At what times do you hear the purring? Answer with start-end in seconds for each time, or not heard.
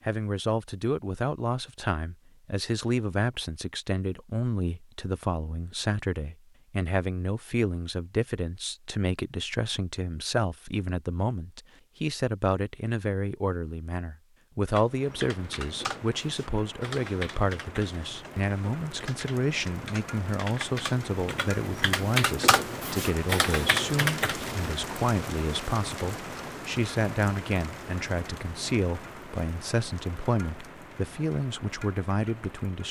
not heard.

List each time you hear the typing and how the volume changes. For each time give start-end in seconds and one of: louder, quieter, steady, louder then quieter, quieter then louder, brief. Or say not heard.
14.7-24.6 louder.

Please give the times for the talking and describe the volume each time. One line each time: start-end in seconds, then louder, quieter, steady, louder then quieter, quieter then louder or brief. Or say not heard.
0.1-32.8 steady.